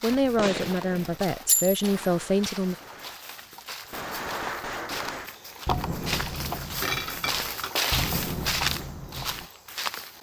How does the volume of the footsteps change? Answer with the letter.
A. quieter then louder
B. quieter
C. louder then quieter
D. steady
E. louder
E.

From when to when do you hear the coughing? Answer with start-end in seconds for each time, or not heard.
not heard.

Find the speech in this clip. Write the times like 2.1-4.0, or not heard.
0.0-2.8.